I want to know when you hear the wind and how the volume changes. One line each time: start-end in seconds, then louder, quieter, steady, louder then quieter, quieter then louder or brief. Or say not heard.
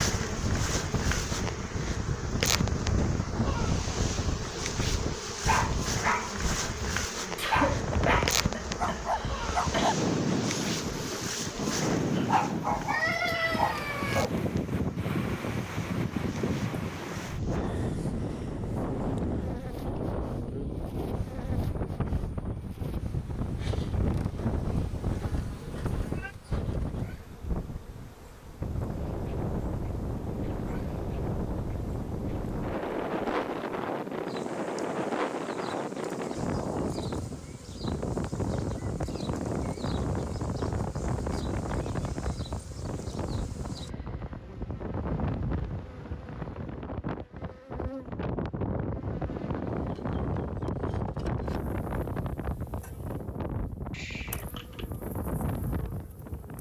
0.0-56.5 steady.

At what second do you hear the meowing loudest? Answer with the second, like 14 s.
13 s.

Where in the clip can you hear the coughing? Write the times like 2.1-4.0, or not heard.
7.3-9.9.